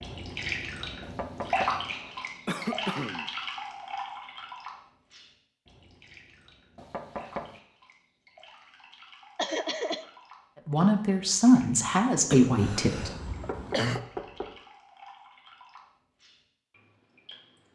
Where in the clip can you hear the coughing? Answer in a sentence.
The coughing can be heard from 2.5 to 3.2 s, from 9.3 to 10.1 s and from 12.3 to 14.0 s.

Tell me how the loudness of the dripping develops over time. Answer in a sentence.
The loudness of the dripping goes down.